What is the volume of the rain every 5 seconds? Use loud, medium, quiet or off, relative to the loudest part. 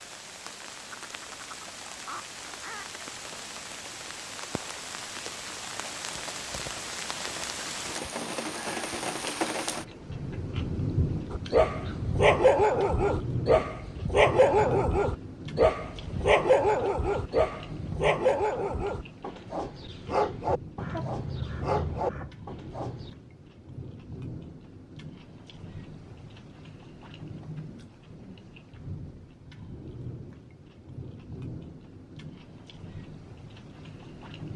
medium, loud, loud, medium, medium, medium, medium.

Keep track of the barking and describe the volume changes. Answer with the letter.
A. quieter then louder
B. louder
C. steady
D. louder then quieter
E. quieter
E.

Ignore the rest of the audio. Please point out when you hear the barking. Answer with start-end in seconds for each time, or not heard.
11.3-23.1.